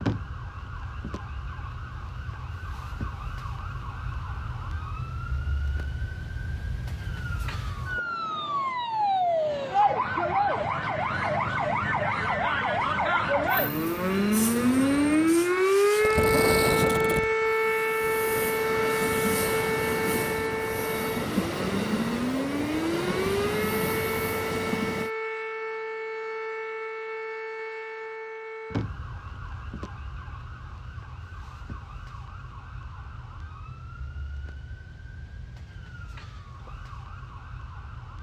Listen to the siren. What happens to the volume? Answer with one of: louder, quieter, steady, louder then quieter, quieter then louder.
louder then quieter.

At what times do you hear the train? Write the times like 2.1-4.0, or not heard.
13.4-25.1.